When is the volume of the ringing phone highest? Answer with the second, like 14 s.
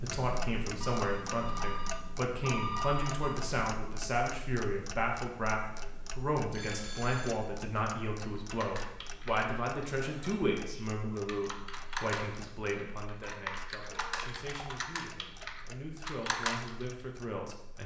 3 s.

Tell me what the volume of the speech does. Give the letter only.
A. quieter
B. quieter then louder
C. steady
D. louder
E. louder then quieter
A.